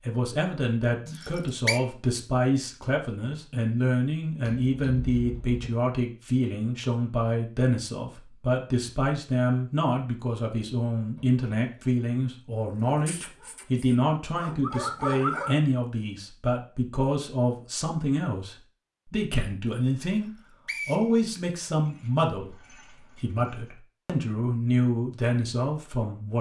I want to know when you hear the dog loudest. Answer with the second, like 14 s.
15 s.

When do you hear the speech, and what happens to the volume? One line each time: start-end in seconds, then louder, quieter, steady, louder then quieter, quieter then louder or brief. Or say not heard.
0.0-26.3 steady.